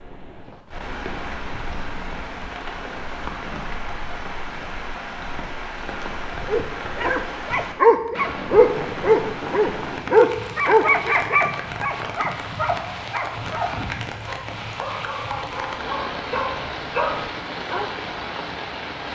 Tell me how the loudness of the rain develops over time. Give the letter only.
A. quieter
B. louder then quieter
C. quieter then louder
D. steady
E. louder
D.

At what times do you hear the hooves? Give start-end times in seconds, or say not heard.
not heard.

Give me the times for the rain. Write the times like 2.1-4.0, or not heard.
0.0-19.1.